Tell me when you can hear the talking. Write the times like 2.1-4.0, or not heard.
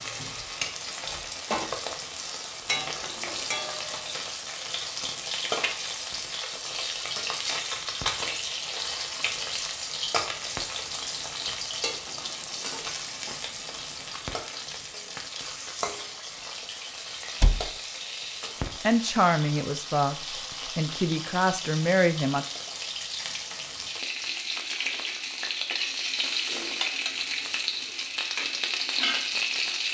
18.8-22.4.